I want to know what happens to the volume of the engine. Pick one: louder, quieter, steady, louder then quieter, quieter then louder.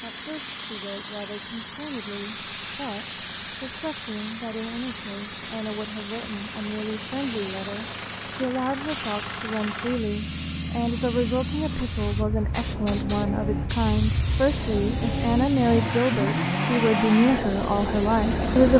louder.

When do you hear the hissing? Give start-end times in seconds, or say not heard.
0.0-18.7.